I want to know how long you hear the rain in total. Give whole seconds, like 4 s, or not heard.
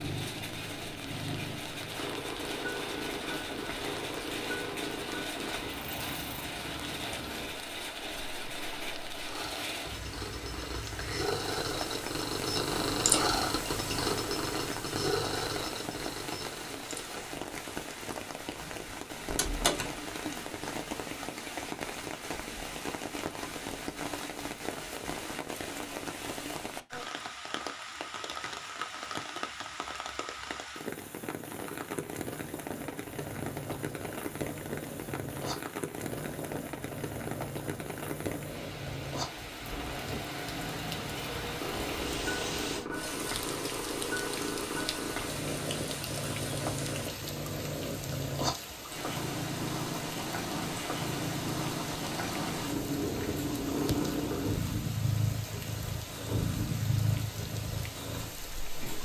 59 s.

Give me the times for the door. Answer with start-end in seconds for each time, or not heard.
19.3-19.9.